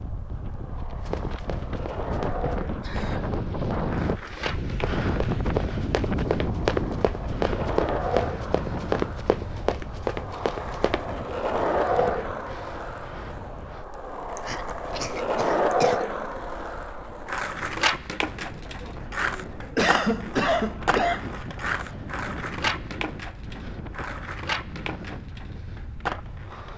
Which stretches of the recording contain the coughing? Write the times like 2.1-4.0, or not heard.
2.8-3.4, 14.3-16.1, 18.6-21.3.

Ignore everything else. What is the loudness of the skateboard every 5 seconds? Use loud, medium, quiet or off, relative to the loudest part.
medium, medium, loud, loud, medium, medium.